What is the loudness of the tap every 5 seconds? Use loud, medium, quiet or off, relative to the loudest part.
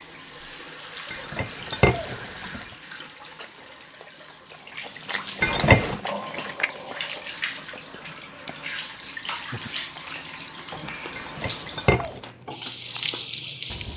medium, loud, loud.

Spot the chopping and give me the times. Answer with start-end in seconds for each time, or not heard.
not heard.